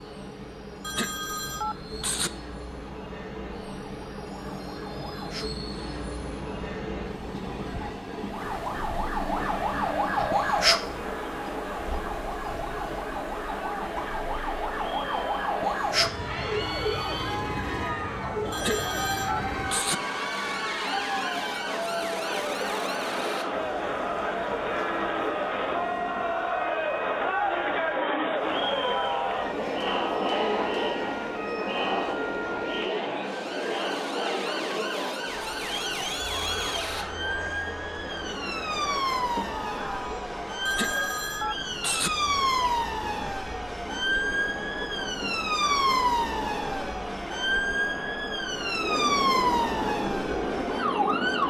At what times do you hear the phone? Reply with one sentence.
The phone can be heard from 0.8 to 2.3 s, from 18.5 to 19.9 s and from 40.6 to 42.1 s.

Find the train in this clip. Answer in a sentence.
You can hear the train from 0.0 to 26.5 s and from 43.7 to 51.4 s.